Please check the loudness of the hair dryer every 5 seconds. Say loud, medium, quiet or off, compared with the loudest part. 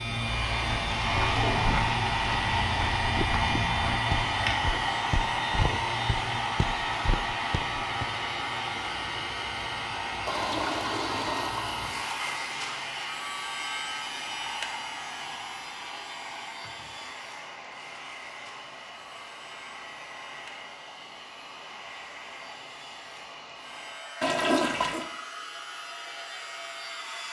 loud, loud, medium, quiet, quiet, quiet.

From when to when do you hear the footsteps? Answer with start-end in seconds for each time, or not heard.
0.7-8.1.